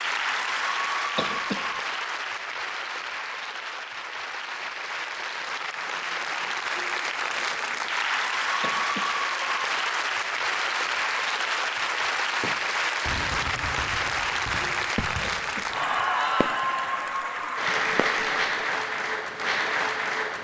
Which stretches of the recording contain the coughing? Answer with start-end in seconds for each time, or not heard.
1.1-1.8, 8.6-9.2, 15.2-15.8.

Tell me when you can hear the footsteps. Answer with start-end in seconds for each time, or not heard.
not heard.